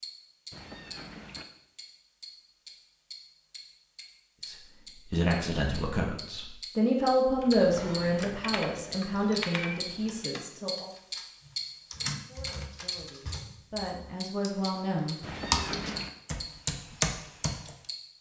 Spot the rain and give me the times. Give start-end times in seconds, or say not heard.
not heard.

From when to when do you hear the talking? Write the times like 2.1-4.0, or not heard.
4.5-10.9, 12.2-15.8.